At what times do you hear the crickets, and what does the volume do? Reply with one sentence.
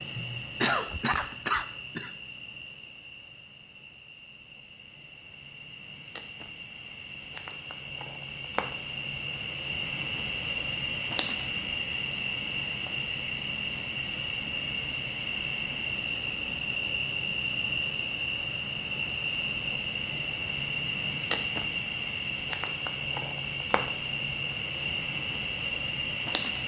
The crickets can be heard from 0.0 to 26.6 s, getting louder.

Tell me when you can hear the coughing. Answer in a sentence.
The coughing can be heard from 0.1 to 2.1 s.